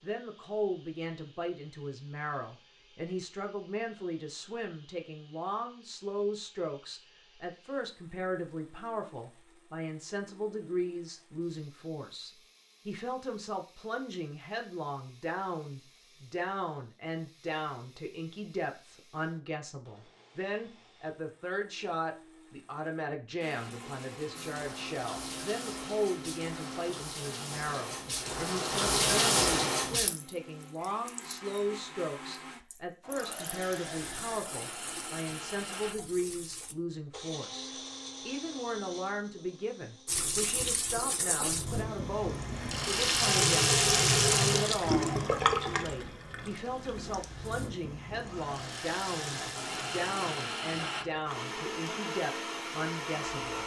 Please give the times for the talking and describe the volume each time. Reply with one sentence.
The talking can be heard from 0.0 to 53.6 s, at a steady volume.